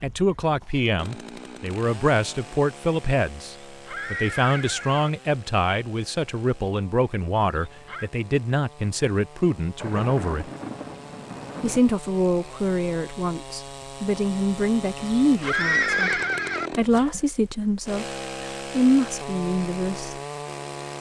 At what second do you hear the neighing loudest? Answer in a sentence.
The loudest moment of the neighing is at 16 seconds.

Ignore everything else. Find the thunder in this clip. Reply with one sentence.
The thunder can be heard from 9.8 to 11.8 s.